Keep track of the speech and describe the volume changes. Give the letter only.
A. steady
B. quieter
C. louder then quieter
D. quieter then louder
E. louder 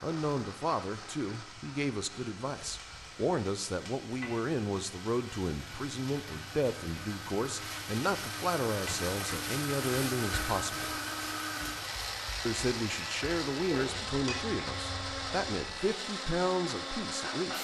A.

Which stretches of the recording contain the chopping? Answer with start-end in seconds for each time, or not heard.
not heard.